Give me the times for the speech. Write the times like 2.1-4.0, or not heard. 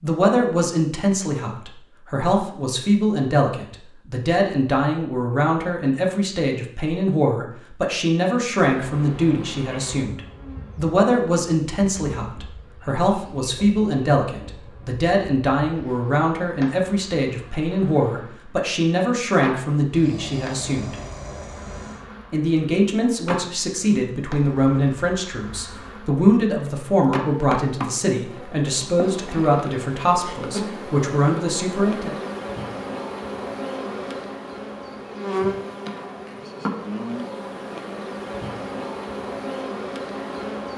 0.0-20.9, 22.3-32.1.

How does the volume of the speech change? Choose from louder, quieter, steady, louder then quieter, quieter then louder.
steady.